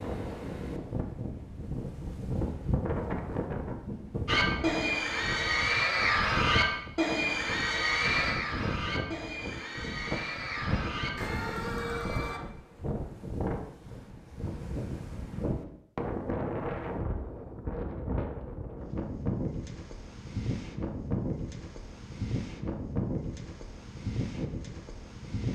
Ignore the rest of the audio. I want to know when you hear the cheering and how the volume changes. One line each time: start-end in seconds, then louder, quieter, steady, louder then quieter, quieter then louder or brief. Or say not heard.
4.2-12.4 quieter.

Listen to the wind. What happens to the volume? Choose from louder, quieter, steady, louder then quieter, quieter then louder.
steady.